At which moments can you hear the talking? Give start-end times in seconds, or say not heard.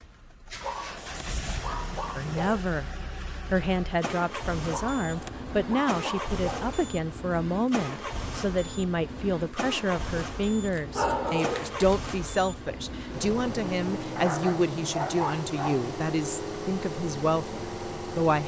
2.1-2.9, 3.5-18.4.